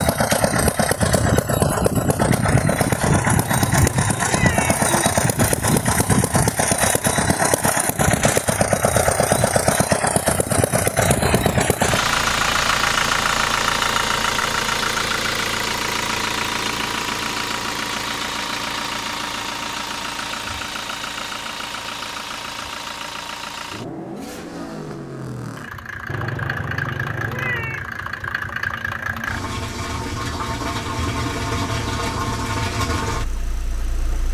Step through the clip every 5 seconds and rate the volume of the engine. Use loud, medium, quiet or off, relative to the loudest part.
loud, loud, loud, medium, medium, medium, medium.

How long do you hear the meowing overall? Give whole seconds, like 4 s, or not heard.
4 s.